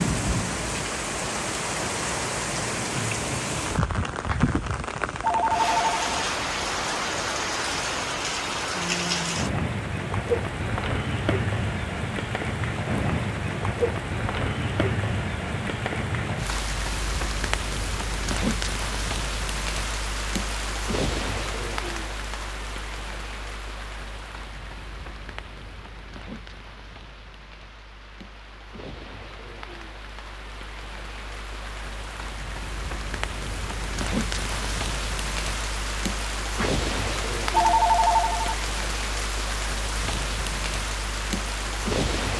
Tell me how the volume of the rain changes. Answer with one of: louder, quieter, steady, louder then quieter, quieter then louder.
quieter then louder.